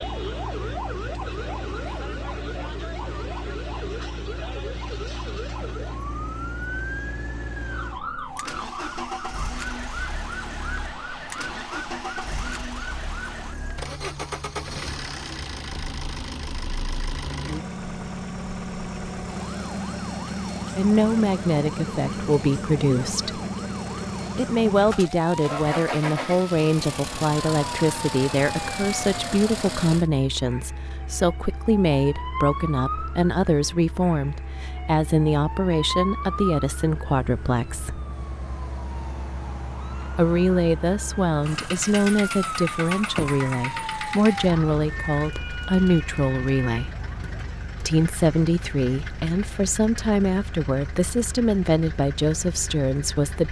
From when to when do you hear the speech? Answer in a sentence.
The speech can be heard from 20.8 to 23.4 s, from 24.4 to 38.0 s, from 40.1 to 46.9 s and from 47.8 to 53.4 s.